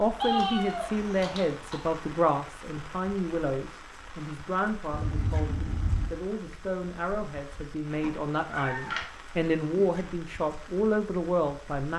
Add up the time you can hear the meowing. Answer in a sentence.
The meowing can be heard for 4 seconds in total.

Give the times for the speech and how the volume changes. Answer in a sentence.
You can hear the speech from 0.0 to 11.9 s, getting quieter then louder.